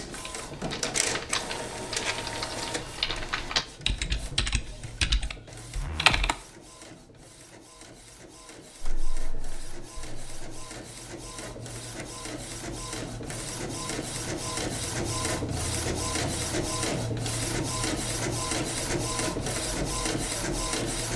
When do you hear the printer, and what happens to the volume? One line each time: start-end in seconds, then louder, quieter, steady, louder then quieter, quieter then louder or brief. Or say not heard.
0.0-21.1 quieter then louder.